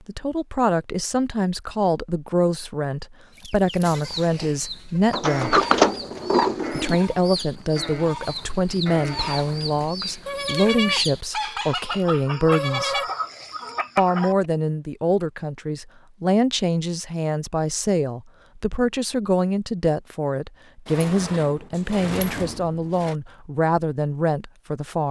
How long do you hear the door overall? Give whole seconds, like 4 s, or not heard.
4 s.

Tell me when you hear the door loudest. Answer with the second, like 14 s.
6 s.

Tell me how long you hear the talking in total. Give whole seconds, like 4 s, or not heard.
23 s.